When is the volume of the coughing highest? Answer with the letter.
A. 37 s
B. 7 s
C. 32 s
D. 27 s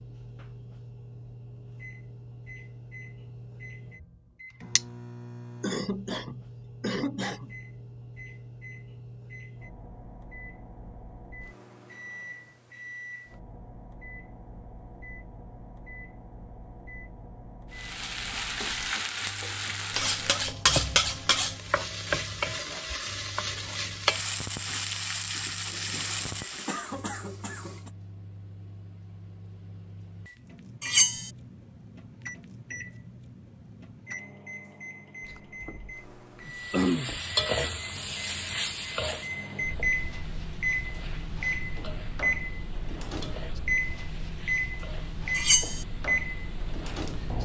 A.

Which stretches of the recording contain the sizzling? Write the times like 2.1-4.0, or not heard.
17.7-26.9, 36.5-47.4.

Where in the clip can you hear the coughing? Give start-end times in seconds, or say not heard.
5.6-7.5, 25.6-27.9, 35.2-37.2.